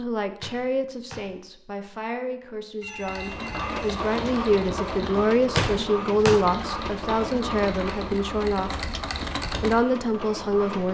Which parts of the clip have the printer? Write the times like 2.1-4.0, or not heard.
3.2-10.9.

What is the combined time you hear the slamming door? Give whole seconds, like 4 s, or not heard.
2 s.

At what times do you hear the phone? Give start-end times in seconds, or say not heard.
2.8-4.0.